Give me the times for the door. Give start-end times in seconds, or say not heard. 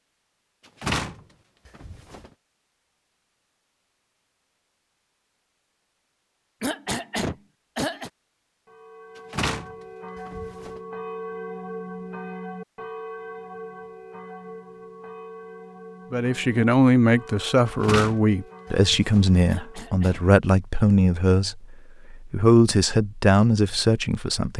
0.8-2.3, 9.2-10.8, 17.6-19.5.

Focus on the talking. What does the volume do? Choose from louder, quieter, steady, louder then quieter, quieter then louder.
steady.